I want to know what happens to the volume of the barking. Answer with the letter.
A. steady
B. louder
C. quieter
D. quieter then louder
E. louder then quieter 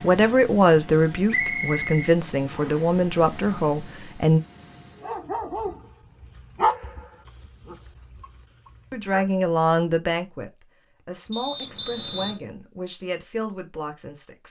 E.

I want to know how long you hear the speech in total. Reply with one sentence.
You can hear the speech for 10 seconds altogether.